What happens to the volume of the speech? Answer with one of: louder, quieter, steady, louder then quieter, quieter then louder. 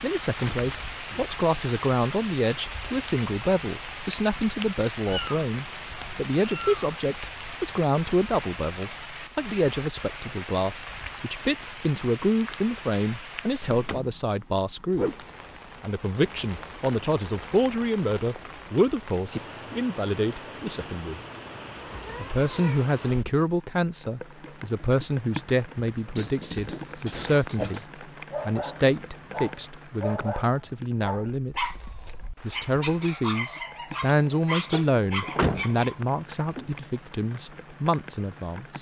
steady.